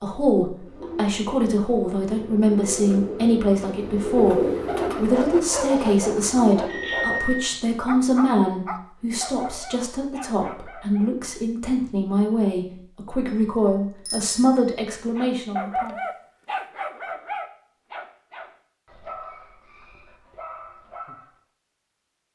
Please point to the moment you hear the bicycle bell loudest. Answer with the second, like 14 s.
7 s.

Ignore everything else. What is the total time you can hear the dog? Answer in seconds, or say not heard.
12 s.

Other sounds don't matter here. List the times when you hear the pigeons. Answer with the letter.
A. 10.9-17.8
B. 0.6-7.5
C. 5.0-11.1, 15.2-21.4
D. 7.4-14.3
B.